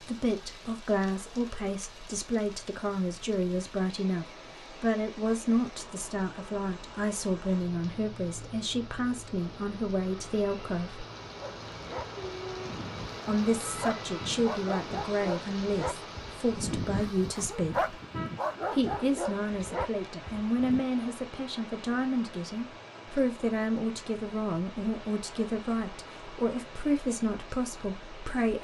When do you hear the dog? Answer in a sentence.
The dog can be heard from 11.4 to 20.9 s.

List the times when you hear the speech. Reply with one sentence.
The speech can be heard from 0.0 to 11.1 s, from 13.2 to 17.9 s and from 18.7 to 28.5 s.